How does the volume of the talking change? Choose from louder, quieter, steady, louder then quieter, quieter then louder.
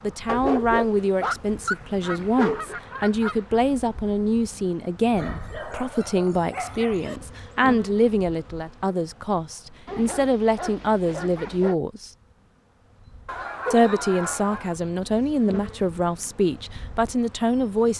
steady.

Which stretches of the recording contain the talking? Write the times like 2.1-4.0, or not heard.
0.0-12.1, 13.7-17.9.